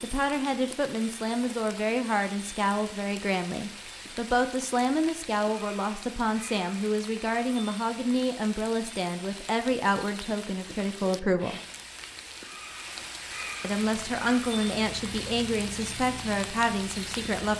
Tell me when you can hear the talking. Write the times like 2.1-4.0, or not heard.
0.0-11.6, 13.6-17.5.